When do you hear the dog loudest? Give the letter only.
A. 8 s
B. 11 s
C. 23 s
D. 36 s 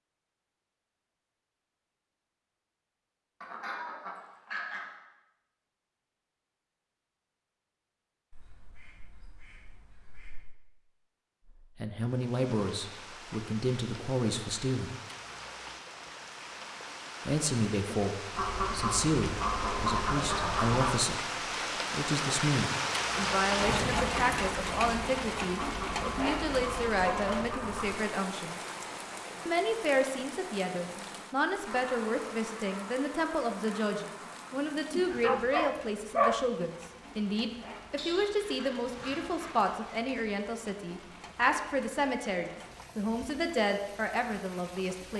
D.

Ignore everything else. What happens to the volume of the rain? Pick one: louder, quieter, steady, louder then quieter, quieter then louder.
louder then quieter.